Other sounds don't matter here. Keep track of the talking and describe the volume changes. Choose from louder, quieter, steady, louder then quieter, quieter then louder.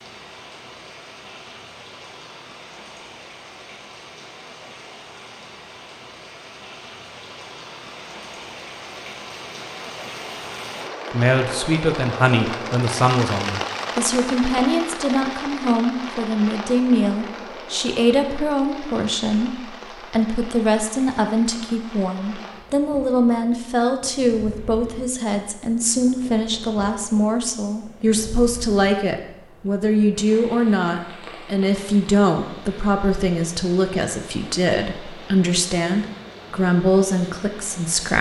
steady.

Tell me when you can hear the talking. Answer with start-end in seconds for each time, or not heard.
11.1-38.1.